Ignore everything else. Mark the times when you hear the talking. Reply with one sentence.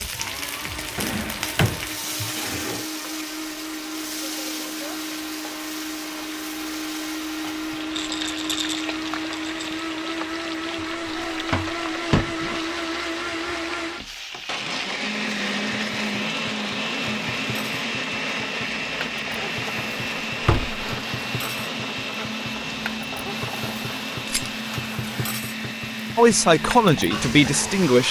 The talking can be heard from 26.1 to 28.0 s.